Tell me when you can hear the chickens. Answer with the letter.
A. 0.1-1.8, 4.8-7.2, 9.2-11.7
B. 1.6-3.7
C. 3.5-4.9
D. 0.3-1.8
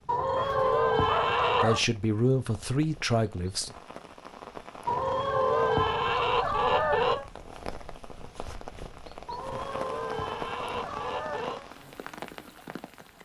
A.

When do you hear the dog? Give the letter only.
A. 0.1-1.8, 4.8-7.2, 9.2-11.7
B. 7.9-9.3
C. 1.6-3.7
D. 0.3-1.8
D.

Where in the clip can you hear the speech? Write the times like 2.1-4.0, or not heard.
1.6-3.7.